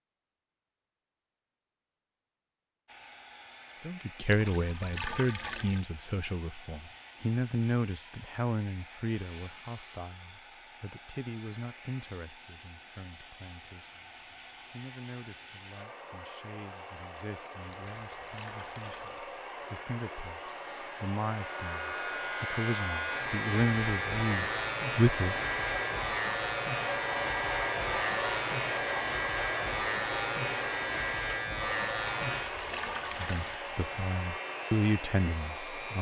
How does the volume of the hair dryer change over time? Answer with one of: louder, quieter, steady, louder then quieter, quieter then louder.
louder.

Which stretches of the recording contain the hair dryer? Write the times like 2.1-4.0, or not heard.
2.9-35.9.